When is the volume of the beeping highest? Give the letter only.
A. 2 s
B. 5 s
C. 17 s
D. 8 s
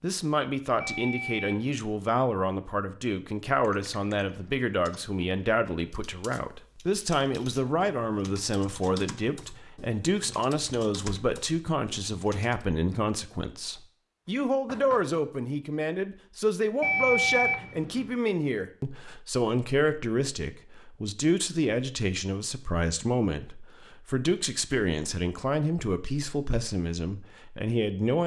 C.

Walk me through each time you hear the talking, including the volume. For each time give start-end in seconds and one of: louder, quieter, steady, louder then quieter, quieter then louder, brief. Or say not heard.
0.0-28.2 steady.